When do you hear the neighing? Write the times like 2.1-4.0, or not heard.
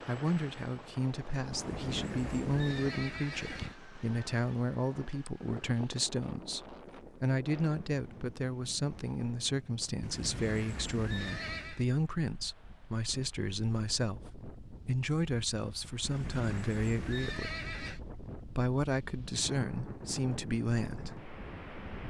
1.5-3.8, 10.0-11.8, 16.0-18.0.